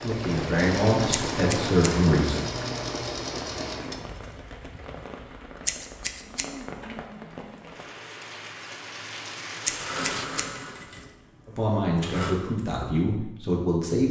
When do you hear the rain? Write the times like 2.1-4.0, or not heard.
0.0-10.3.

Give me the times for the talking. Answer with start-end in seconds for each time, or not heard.
0.0-2.4, 11.4-14.0.